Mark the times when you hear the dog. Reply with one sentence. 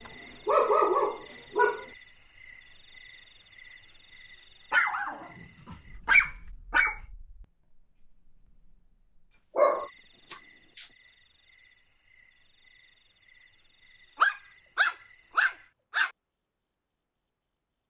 The dog can be heard from 0.1 to 1.9 s, from 4.7 to 7.0 s, from 9.3 to 10.8 s and from 14.2 to 16.1 s.